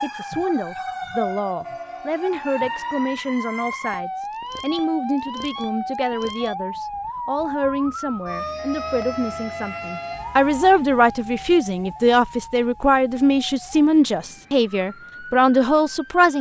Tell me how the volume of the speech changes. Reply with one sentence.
The loudness of the speech goes up.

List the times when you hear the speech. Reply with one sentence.
The speech can be heard from 0.0 to 16.3 s.